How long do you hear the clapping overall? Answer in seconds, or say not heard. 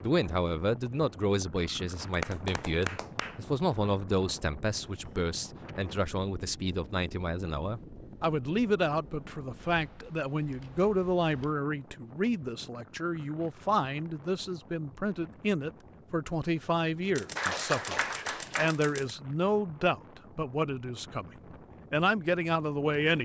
3 s.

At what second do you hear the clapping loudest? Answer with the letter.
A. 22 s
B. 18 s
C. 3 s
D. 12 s
B.